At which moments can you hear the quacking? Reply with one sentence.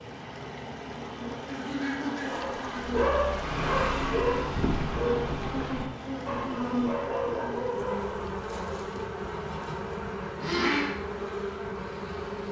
You can hear the quacking from 1.4 to 2.9 s and from 8.4 to 10.9 s.